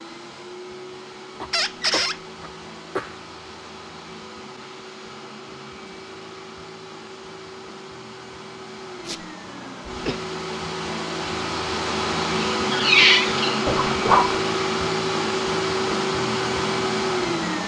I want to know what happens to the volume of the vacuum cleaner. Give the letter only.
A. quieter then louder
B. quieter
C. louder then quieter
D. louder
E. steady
D.